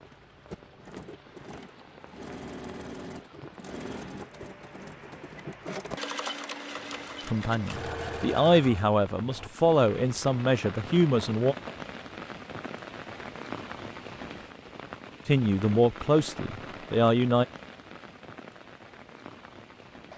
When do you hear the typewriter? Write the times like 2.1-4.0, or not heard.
not heard.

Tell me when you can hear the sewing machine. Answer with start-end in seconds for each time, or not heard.
0.0-9.5.